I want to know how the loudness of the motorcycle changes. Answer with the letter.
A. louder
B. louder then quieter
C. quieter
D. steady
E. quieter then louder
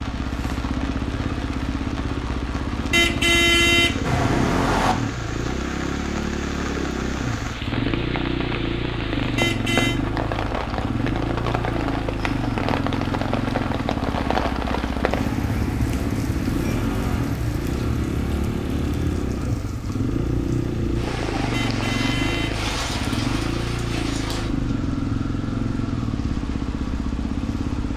D.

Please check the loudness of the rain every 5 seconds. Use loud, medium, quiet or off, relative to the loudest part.
medium, loud, loud, loud, loud, medium.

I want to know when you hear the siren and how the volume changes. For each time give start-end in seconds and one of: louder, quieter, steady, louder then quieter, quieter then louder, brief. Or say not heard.
not heard.